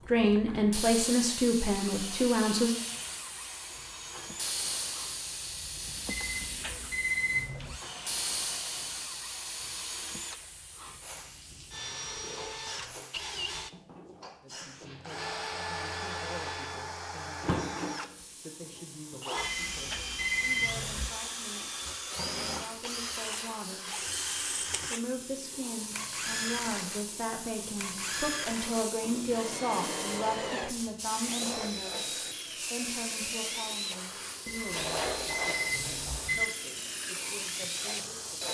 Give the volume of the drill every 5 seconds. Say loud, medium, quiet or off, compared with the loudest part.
medium, medium, medium, loud, loud, loud, loud, loud.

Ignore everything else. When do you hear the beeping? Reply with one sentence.
The beeping can be heard from 6.0 to 7.8 s, from 19.4 to 21.1 s and from 34.5 to 36.5 s.